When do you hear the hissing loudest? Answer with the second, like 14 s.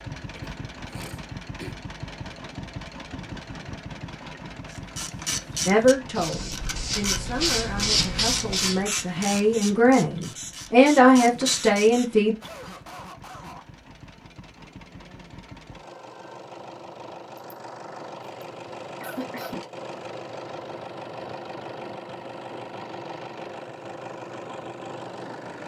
8 s.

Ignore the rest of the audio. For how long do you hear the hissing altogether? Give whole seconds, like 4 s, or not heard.
7 s.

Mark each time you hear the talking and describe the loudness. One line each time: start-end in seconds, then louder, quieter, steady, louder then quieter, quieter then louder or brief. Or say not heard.
5.7-12.3 louder.